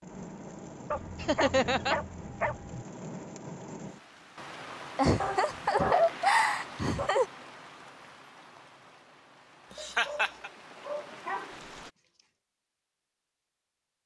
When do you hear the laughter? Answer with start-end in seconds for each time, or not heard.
1.2-1.9, 5.0-7.2, 9.7-10.5.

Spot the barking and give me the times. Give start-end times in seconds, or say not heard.
0.9-2.9, 5.2-7.1, 9.8-12.3.